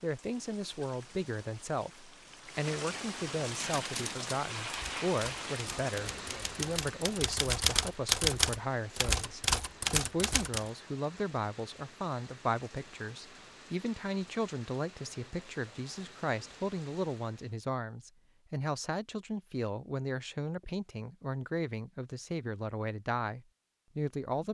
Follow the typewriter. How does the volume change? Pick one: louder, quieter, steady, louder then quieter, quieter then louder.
louder.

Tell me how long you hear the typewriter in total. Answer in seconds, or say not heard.
7 s.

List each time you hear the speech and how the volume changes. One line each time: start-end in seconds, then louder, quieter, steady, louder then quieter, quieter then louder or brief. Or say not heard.
0.0-24.4 steady.